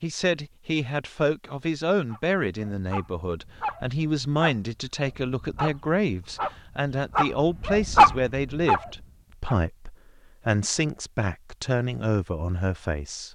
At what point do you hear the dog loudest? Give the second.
8 s.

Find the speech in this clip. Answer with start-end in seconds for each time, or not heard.
0.0-13.3.